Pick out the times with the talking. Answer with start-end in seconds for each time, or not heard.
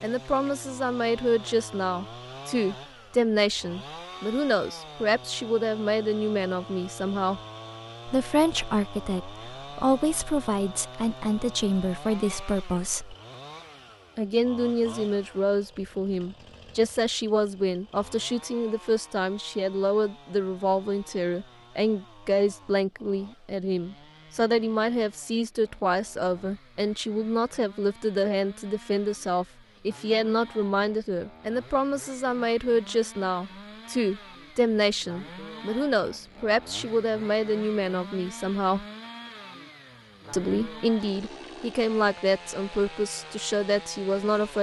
0.0-7.4, 8.1-13.2, 14.2-38.9, 40.3-44.5.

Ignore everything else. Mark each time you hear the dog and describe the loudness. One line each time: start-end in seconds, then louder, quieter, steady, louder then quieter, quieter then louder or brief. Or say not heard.
not heard.